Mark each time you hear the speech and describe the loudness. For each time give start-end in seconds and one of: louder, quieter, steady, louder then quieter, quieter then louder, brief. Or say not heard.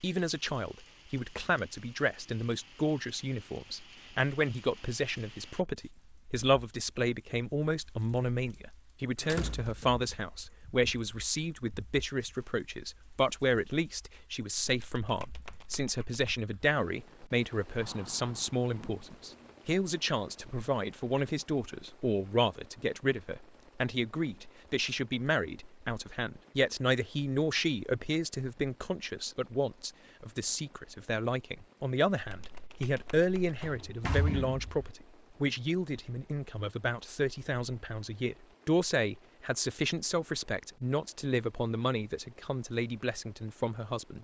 0.0-44.1 steady.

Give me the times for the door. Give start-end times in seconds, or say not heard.
9.2-10.0, 17.8-19.6, 33.6-34.9.